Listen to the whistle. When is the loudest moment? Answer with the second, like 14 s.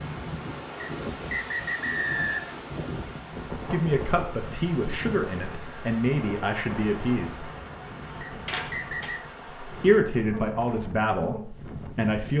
2 s.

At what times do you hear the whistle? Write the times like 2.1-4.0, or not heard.
0.8-2.6, 8.2-9.2.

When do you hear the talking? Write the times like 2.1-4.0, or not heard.
3.7-7.5, 9.7-12.3.